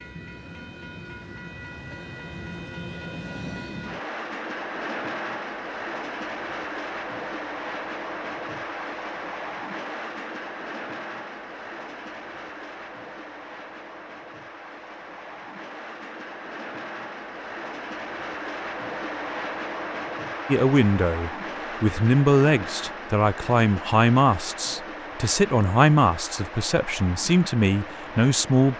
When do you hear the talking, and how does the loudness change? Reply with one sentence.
You can hear the talking from 20.4 to 28.7 s, at a steady volume.